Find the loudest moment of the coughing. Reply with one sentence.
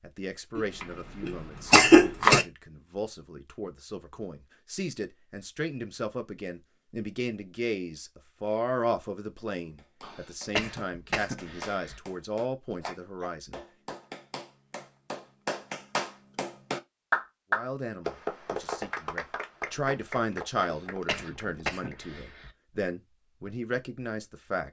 The volume of the coughing peaks at 2 seconds.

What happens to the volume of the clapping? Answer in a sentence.
The loudness of the clapping goes up, then down.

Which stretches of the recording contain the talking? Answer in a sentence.
You can hear the talking from 0.0 to 13.9 s and from 17.5 to 24.6 s.